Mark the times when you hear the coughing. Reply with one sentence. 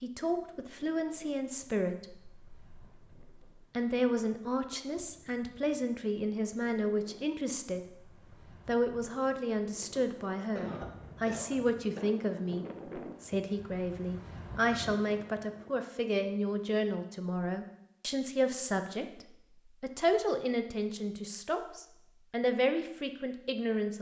The coughing can be heard from 10.3 to 12.2 s.